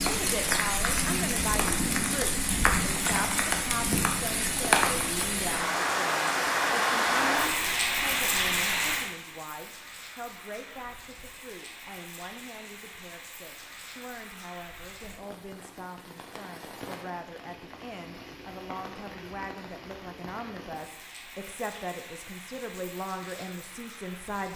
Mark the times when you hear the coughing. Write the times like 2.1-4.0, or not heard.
not heard.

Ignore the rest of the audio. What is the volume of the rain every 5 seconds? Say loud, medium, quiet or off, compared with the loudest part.
loud, loud, quiet, quiet, quiet.